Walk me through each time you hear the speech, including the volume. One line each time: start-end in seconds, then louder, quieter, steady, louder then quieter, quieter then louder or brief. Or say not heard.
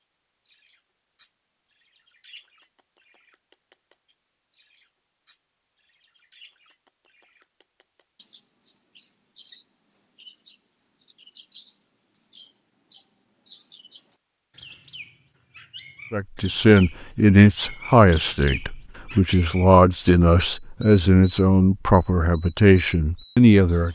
16.1-23.9 steady.